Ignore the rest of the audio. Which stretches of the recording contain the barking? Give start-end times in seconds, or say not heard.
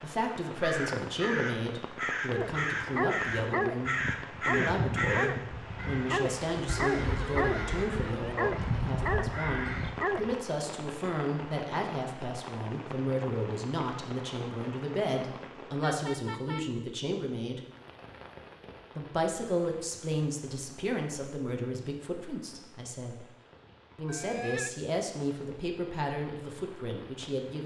2.3-10.4.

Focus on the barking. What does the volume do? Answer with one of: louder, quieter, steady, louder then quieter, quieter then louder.
steady.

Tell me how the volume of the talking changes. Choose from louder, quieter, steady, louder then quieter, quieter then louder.
steady.